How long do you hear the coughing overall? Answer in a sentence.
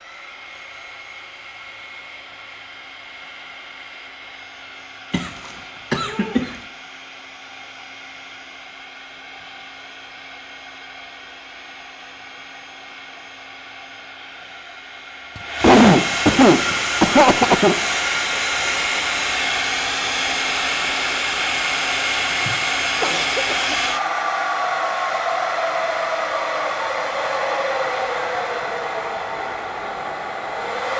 The coughing can be heard for 5 seconds in total.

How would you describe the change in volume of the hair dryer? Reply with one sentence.
The loudness of the hair dryer goes up.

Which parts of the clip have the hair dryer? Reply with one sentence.
The hair dryer can be heard from 0.0 to 30.9 s.